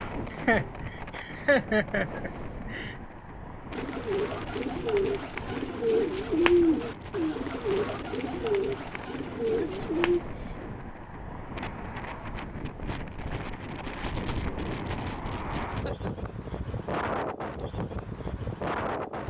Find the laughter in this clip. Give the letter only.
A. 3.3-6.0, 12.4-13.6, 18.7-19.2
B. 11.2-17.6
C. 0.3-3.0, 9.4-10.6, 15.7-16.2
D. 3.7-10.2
C.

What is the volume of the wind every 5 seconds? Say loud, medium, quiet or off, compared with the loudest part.
medium, medium, loud, loud.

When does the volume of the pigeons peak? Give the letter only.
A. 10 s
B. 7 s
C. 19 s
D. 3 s
B.